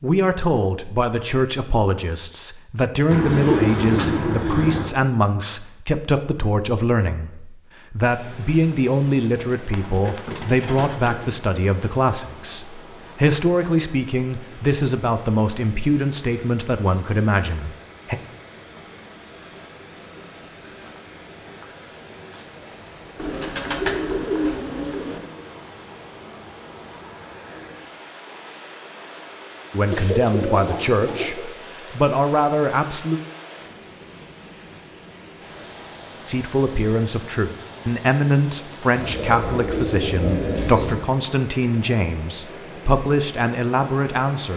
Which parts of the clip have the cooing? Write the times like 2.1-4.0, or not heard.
3.1-5.0, 9.7-11.3, 23.1-25.2, 29.9-31.4, 39.0-41.0.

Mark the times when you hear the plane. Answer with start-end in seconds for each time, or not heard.
not heard.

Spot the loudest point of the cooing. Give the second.
4 s.